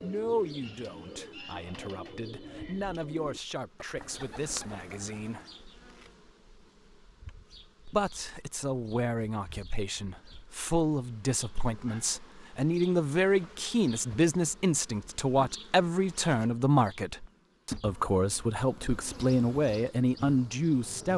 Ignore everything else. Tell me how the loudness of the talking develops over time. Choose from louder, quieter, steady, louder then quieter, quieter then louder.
louder.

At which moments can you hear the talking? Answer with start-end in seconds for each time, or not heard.
0.0-5.5, 7.8-21.1.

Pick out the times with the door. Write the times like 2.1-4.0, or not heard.
not heard.